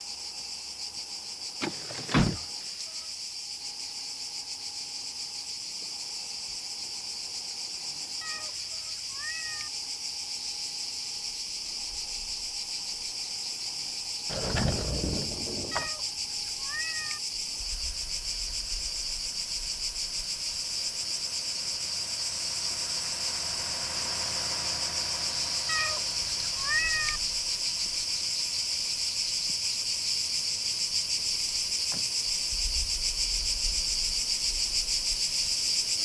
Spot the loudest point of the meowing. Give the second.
27 s.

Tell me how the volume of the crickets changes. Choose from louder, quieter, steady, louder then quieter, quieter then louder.
louder.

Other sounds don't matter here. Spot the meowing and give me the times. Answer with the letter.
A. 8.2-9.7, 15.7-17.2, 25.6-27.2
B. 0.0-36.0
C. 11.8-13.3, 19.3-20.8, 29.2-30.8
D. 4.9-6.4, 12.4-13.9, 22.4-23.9
A.